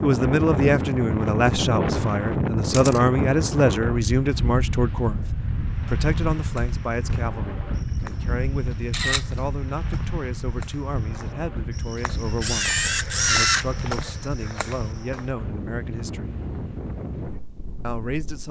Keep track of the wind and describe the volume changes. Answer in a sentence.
The volume of the wind goes down.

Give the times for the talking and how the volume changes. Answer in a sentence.
You can hear the talking from 0.0 to 16.4 s, getting quieter; and briefly from 17.8 to 18.4 s.